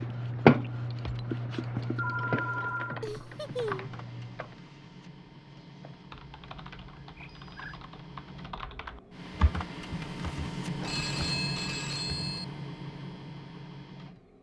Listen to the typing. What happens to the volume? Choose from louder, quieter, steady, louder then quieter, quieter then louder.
quieter then louder.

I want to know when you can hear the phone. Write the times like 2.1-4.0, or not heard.
1.9-3.0, 7.2-7.8, 10.8-12.4.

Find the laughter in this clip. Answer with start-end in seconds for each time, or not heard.
3.0-4.0.